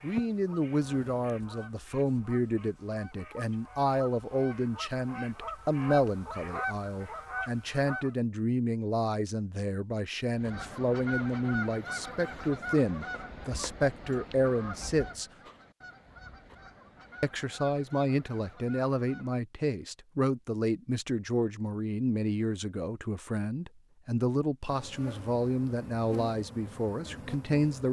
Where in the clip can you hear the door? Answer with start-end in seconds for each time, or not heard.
not heard.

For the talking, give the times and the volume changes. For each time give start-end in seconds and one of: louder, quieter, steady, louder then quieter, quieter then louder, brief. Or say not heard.
0.0-15.2 steady
17.2-27.8 steady.